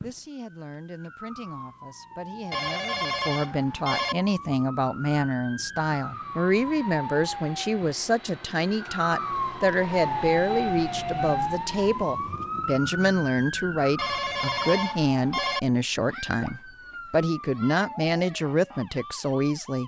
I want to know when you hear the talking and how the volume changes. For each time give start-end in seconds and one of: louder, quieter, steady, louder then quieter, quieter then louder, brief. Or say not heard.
0.0-19.8 louder.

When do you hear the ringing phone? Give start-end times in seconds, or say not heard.
2.5-4.2, 13.9-15.6.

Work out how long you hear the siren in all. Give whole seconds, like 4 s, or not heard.
20 s.